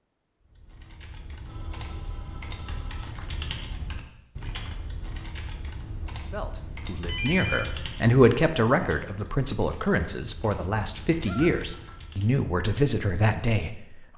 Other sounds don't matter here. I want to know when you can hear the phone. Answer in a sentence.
The phone can be heard from 1.4 to 3.1 s, from 7.0 to 7.7 s and from 11.2 to 12.0 s.